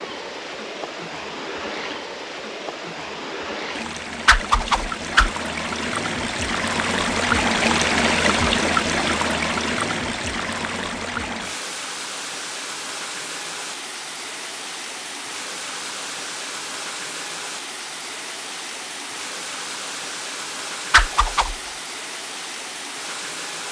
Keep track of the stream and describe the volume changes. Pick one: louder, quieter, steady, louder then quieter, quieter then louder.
louder then quieter.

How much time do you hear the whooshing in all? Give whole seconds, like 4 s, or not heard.
2 s.